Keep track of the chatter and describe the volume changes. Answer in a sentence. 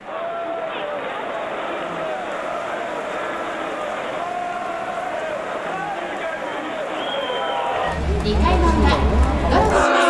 The loudness of the chatter goes up.